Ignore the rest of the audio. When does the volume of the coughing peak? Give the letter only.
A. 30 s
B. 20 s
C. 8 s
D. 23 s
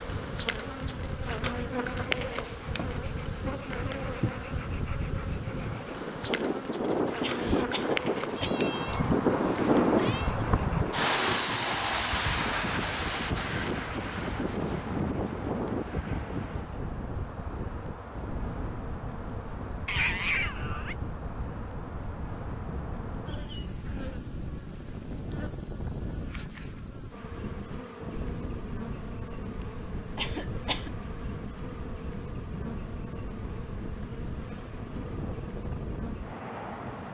A.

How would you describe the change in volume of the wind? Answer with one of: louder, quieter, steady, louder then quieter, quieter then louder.
louder then quieter.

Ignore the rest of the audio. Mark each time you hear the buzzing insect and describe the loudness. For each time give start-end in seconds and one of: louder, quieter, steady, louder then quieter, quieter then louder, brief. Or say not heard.
0.0-37.1 quieter.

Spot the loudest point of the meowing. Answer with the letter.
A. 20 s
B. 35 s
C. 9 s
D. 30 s
A.